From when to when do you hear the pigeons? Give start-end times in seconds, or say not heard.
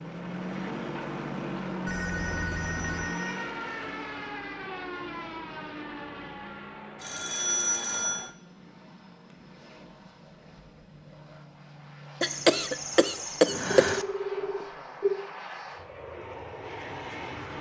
not heard.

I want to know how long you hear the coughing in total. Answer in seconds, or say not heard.
2 s.